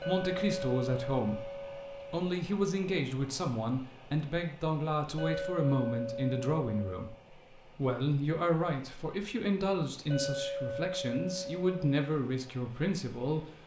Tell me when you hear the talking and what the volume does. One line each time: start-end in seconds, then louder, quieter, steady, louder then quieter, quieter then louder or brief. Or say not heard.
0.0-13.4 steady.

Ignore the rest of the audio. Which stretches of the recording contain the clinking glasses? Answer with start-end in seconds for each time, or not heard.
0.0-2.2, 5.2-7.2, 10.1-12.1.